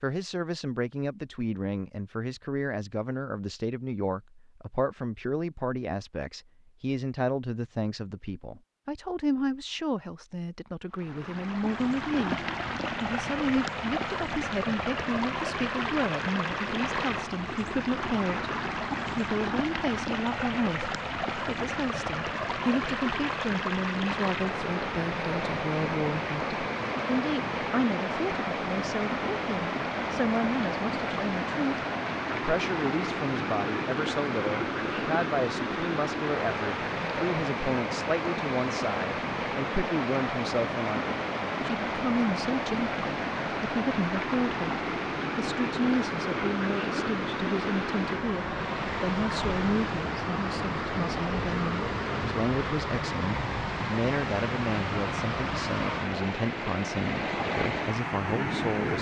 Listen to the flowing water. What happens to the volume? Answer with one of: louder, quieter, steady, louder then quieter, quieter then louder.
steady.